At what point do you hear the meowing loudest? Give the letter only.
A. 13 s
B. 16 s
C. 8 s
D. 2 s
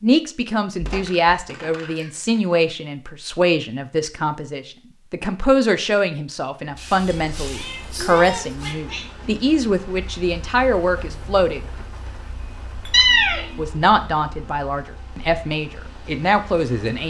A.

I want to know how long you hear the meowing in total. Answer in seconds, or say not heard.
4 s.